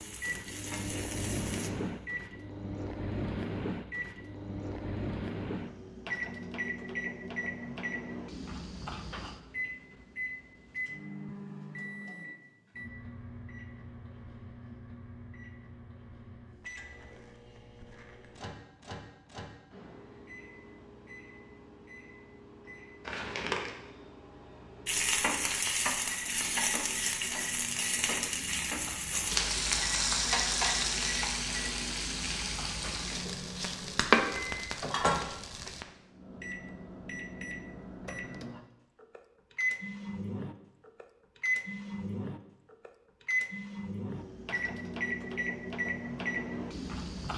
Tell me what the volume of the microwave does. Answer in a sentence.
The loudness of the microwave goes down, then up.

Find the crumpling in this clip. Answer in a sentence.
The crumpling can be heard from 23.1 to 23.7 s.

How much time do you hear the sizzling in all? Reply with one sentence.
You can hear the sizzling for 13 seconds altogether.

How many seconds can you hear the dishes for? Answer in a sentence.
The dishes can't be heard in this clip.